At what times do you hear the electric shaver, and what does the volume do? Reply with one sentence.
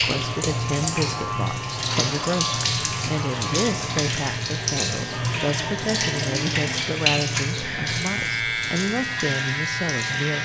The electric shaver can be heard from 0.1 to 10.4 s, getting louder.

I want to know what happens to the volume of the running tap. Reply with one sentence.
The loudness of the running tap goes down.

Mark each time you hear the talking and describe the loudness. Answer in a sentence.
The talking can be heard from 0.0 to 10.4 s, at a steady volume.